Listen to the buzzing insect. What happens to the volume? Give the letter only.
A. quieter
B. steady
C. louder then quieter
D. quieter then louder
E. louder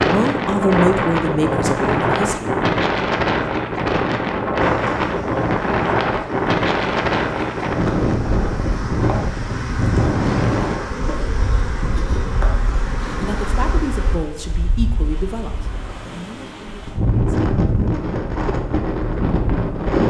E.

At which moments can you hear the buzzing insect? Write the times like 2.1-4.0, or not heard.
4.6-14.2.